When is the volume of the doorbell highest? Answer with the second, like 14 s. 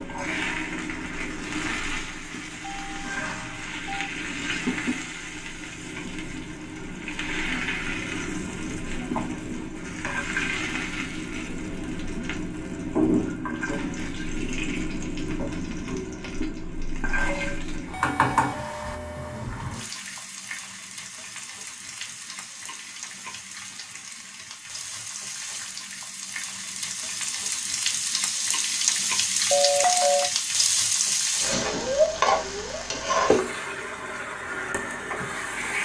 30 s.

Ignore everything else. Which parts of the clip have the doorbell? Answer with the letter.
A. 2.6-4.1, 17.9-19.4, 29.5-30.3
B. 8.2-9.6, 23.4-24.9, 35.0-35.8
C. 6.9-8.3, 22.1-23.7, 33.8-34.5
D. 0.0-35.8
A.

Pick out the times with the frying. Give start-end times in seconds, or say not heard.
0.0-35.8.